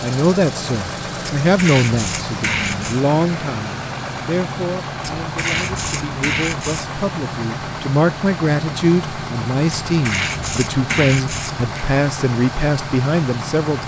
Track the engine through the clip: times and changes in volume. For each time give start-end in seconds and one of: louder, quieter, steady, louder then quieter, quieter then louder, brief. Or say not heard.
0.0-13.8 steady.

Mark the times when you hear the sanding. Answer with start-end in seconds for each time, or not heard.
1.4-3.0, 5.0-6.9, 9.8-11.7.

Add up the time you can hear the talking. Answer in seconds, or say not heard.
14 s.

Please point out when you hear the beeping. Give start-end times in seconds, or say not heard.
not heard.